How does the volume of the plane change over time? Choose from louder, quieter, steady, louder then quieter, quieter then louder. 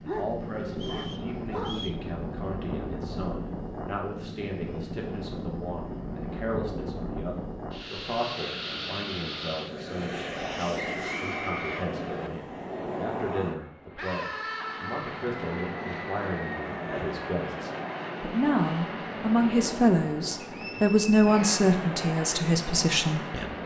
steady.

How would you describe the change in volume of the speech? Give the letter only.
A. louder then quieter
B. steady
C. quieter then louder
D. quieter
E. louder
E.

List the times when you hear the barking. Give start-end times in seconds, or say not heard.
0.1-1.9.